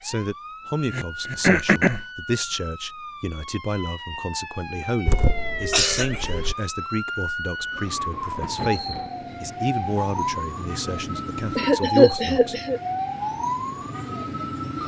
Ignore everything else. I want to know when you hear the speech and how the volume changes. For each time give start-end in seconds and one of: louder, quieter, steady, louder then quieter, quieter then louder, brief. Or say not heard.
0.0-12.6 steady.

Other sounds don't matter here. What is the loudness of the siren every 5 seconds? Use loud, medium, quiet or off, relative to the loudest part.
medium, loud, loud.